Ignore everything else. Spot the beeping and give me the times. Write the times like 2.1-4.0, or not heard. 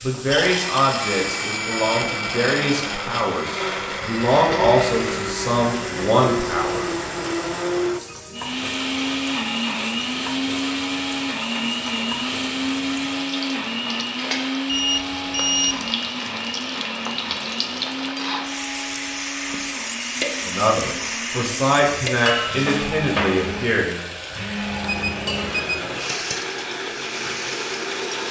1.0-3.0, 14.7-15.9, 24.8-26.1.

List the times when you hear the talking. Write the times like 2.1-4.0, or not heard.
0.0-6.8, 20.4-24.0.